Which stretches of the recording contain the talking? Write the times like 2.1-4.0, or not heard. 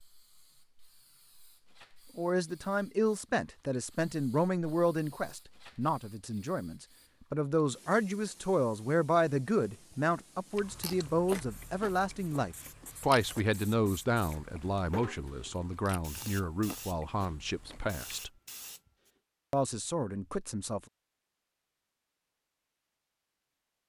2.1-18.3, 19.5-20.8.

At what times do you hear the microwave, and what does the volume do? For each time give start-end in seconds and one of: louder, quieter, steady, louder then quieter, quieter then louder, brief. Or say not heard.
not heard.